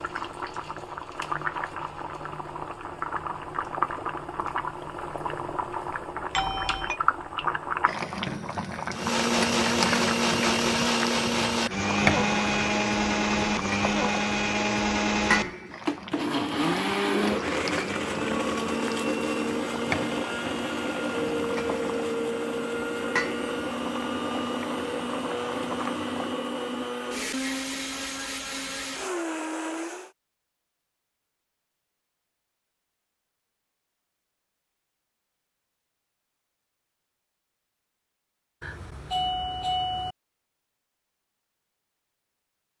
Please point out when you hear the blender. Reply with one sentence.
The blender can be heard from 8.9 to 30.1 s.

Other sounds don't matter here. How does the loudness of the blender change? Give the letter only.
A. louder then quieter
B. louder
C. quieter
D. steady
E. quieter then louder
C.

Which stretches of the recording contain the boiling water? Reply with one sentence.
The boiling water can be heard from 0.0 to 26.4 s.